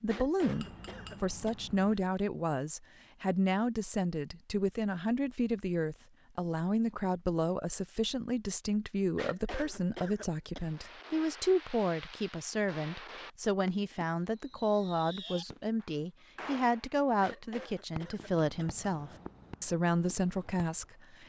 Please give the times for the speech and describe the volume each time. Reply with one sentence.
The speech can be heard from 0.0 to 21.2 s, at a steady volume.